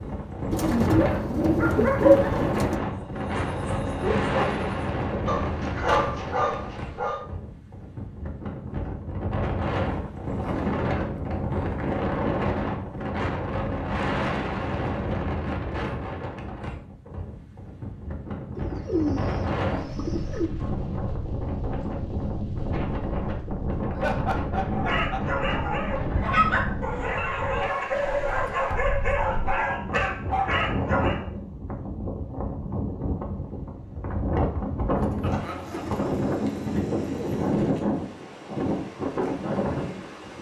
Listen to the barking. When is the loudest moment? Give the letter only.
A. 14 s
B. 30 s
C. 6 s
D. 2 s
D.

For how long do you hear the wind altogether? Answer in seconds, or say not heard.
40 s.